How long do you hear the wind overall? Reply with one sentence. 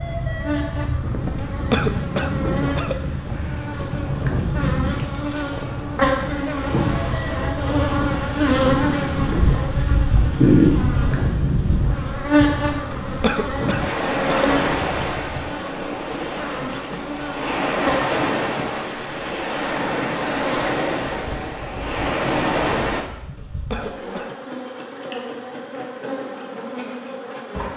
The wind can be heard for 23 seconds in total.